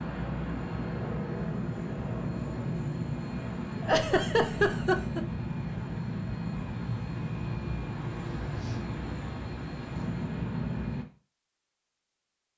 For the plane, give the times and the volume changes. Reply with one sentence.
You can hear the plane from 0.0 to 11.1 s, at a steady volume.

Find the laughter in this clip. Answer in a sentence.
You can hear the laughter from 3.8 to 5.2 s.